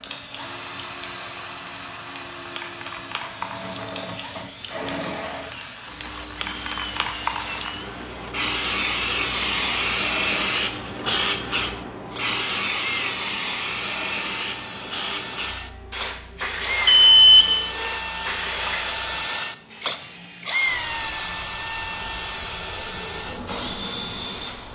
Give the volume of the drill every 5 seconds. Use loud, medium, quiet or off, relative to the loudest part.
medium, medium, medium, loud, loud.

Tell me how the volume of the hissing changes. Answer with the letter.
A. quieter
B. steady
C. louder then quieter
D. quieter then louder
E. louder
C.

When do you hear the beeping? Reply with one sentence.
You can hear the beeping from 16.9 to 17.9 s.